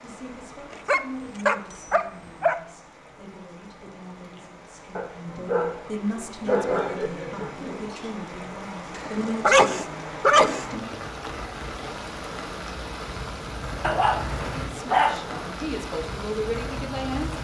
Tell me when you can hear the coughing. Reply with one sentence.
You can hear the coughing from 6.4 to 8.2 s.